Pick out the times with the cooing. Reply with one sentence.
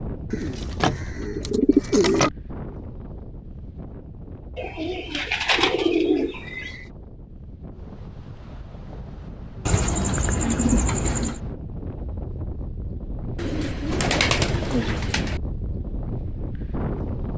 The cooing can be heard from 0.3 to 2.3 s, from 4.5 to 6.8 s, from 9.7 to 11.4 s and from 13.3 to 15.4 s.